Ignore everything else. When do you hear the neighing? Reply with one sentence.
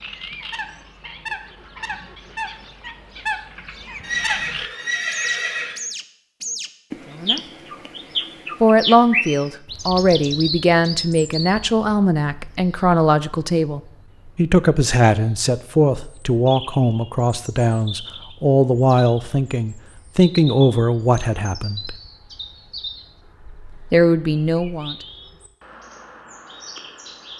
The neighing can be heard from 4.0 to 5.8 s.